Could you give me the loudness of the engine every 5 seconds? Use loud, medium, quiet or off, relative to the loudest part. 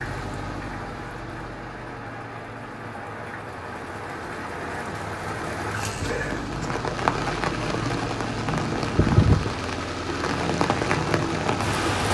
medium, loud, loud.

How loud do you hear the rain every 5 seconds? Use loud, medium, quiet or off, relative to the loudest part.
medium, loud, loud.